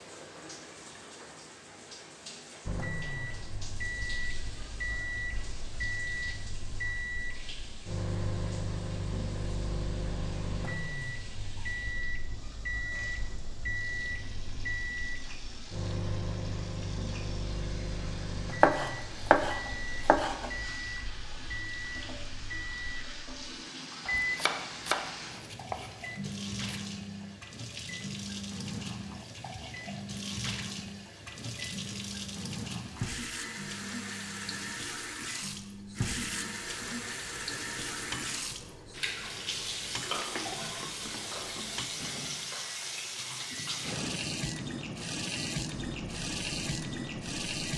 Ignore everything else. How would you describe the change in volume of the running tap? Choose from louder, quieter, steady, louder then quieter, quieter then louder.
louder.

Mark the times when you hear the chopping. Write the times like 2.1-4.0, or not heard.
18.6-20.5, 24.1-26.8.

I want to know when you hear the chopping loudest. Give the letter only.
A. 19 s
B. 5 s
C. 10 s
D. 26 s
A.